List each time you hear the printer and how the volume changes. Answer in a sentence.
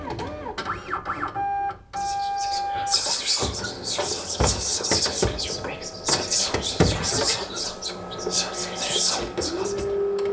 You can hear the printer from 0.0 to 10.2 s, at a steady volume.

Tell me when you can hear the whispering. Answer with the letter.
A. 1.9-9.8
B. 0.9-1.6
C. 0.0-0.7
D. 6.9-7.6
A.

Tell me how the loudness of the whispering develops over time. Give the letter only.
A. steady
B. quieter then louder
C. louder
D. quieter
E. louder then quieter
A.